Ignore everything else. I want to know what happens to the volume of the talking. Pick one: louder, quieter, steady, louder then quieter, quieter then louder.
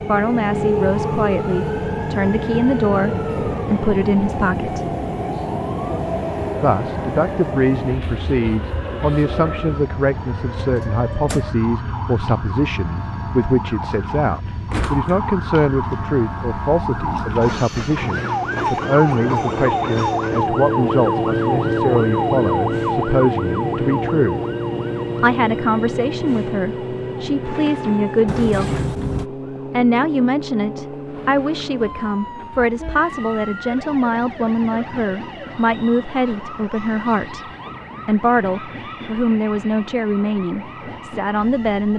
steady.